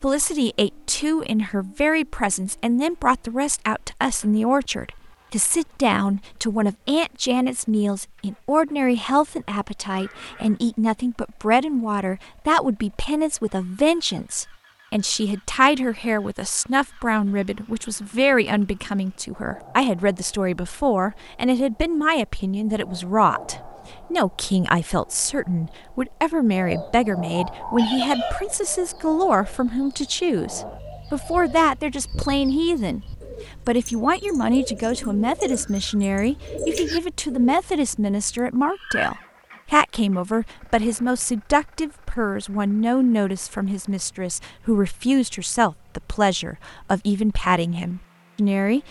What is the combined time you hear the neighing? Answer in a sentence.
You can hear the neighing for 2 seconds altogether.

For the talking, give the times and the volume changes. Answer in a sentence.
You can hear the talking from 0.0 to 48.8 s, at a steady volume.